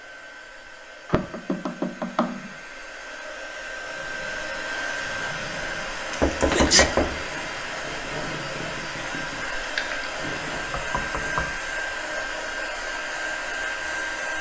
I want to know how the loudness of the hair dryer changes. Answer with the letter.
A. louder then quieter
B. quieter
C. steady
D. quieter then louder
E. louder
E.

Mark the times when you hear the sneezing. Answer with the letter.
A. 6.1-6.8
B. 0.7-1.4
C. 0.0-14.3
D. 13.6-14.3
A.